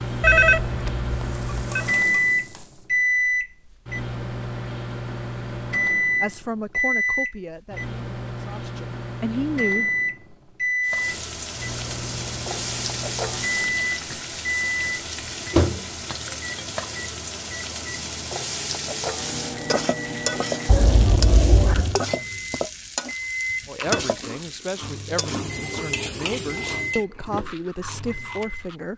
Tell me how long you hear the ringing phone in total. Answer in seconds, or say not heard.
3 s.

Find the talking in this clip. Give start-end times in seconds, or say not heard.
6.2-9.9, 23.6-28.9.